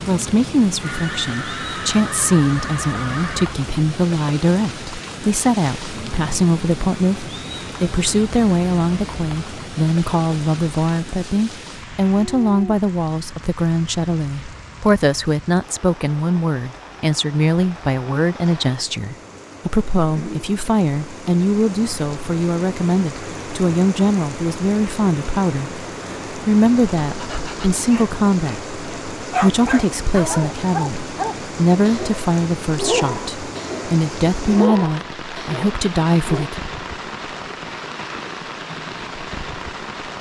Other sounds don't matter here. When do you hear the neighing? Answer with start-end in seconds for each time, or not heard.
0.8-3.5.